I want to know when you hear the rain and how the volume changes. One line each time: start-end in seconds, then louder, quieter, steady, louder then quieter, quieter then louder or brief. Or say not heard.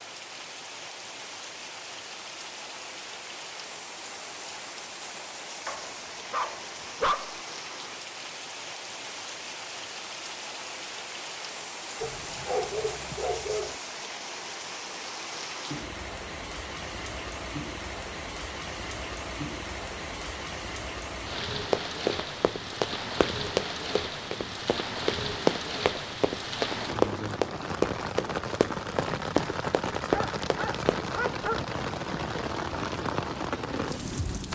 0.0-34.5 louder.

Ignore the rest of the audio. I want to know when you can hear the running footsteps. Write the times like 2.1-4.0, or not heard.
21.7-31.3.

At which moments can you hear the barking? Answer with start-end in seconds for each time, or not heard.
5.7-7.4, 12.0-13.8, 30.0-31.6.